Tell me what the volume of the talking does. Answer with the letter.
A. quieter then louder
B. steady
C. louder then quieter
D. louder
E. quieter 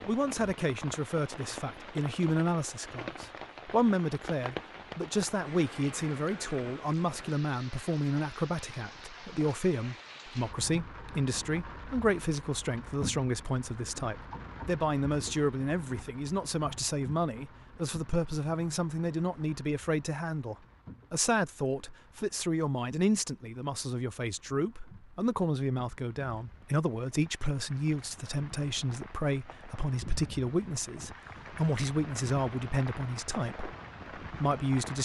B.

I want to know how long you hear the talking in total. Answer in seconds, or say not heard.
35 s.